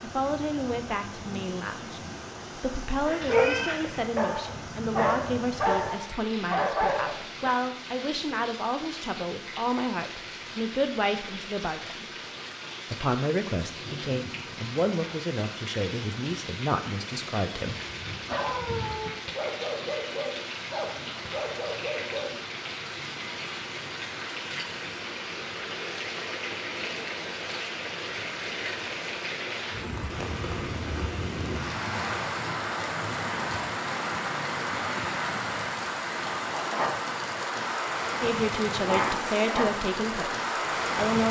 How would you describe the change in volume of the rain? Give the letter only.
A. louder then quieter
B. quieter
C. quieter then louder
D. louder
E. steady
D.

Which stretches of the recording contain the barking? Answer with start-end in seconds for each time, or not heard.
3.0-7.5, 17.9-22.3.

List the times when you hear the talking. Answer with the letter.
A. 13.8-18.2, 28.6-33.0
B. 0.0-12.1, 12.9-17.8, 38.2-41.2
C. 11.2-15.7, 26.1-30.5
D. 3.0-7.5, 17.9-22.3
B.